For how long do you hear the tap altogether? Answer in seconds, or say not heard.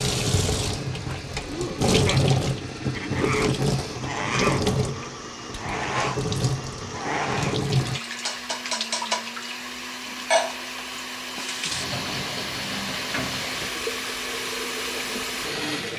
16 s.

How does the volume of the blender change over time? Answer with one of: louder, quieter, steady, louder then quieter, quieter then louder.
louder.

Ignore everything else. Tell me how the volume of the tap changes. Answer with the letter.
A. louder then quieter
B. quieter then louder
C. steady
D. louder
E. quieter
E.